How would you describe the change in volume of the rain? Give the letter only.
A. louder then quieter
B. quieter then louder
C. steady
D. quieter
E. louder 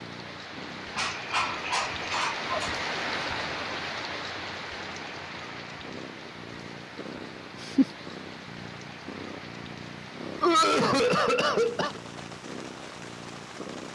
D.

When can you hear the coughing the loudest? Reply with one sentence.
The loudest moment of the coughing is at 11 seconds.